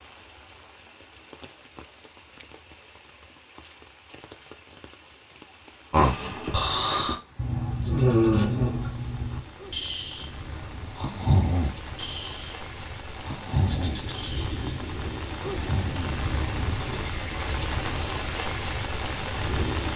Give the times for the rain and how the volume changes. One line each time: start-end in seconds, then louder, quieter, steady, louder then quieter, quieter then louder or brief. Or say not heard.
0.0-19.9 louder.